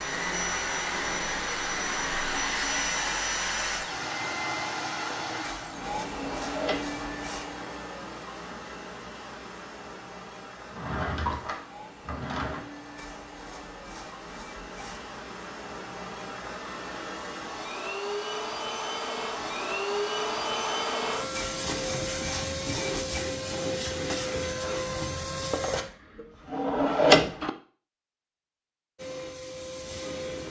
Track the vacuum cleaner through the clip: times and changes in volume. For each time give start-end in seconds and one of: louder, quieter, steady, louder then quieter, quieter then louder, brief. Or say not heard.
0.0-25.9 quieter then louder
28.9-30.4 brief.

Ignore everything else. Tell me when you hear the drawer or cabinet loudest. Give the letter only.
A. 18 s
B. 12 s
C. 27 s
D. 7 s
C.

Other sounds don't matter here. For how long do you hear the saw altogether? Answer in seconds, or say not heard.
6 s.